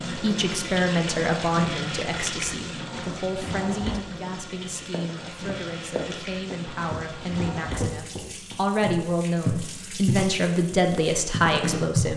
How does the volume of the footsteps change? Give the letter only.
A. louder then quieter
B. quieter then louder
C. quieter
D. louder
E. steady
A.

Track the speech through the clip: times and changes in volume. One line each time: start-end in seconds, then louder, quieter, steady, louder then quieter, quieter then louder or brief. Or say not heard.
0.1-12.1 quieter then louder.